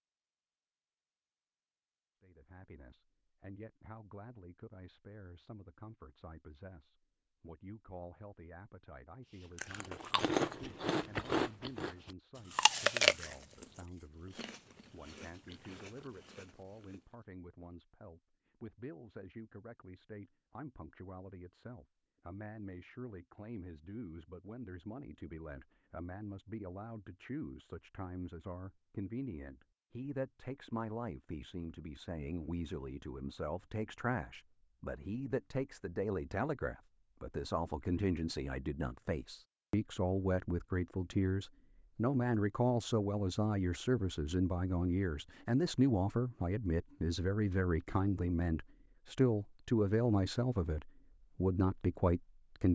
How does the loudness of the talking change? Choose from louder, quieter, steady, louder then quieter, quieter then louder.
louder.